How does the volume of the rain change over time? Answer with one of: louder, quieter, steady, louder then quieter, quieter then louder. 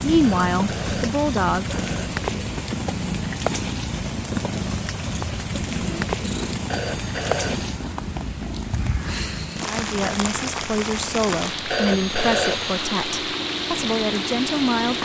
steady.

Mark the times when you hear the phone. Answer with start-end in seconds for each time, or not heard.
0.2-2.1, 6.7-7.7, 11.7-12.8.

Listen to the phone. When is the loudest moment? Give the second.
12 s.